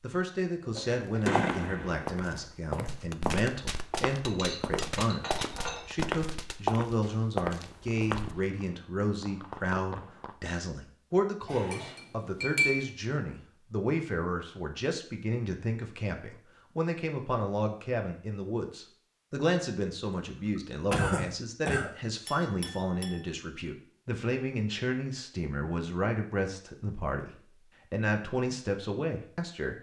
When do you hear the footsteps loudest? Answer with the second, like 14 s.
7 s.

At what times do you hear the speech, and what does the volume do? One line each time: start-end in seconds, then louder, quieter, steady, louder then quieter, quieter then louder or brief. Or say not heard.
0.0-29.7 steady.